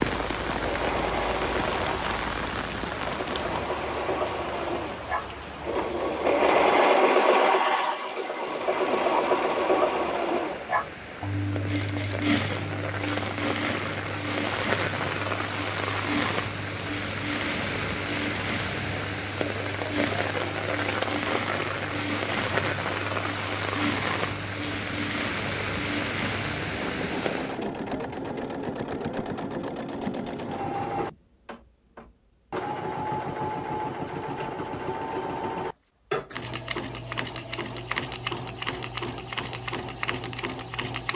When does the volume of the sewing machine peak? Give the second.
7 s.